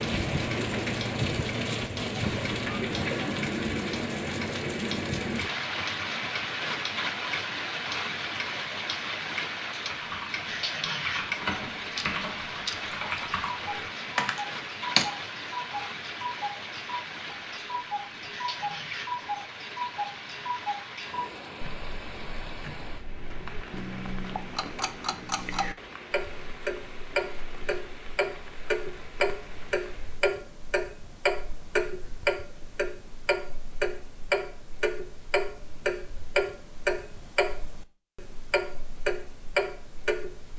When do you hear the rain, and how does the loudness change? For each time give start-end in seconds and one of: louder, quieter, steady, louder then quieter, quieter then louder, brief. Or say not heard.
0.0-30.2 quieter.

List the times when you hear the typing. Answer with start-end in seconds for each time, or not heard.
9.8-15.1.